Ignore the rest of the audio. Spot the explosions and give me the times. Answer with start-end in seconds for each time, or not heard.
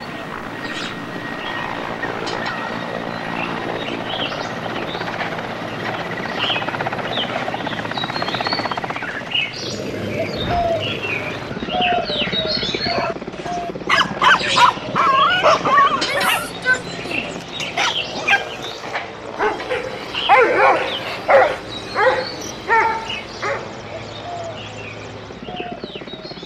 not heard.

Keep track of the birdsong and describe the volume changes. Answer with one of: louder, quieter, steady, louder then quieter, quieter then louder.
louder then quieter.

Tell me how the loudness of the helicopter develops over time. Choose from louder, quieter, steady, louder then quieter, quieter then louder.
quieter.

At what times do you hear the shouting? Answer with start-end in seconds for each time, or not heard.
15.9-17.3.